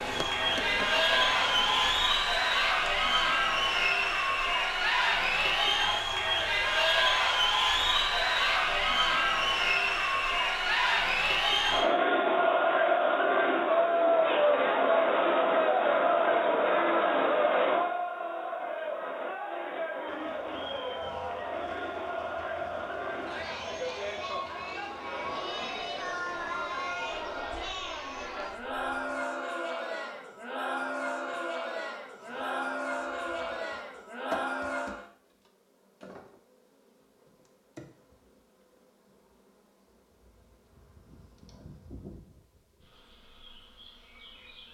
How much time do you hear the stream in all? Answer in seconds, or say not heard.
not heard.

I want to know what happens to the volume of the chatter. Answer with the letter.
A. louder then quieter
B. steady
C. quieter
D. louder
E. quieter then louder
C.